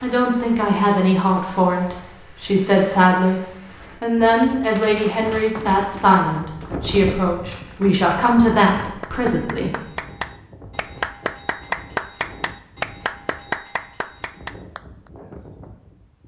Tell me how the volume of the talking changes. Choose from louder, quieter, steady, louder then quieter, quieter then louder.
steady.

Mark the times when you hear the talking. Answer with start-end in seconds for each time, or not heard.
0.0-3.4, 4.0-9.8.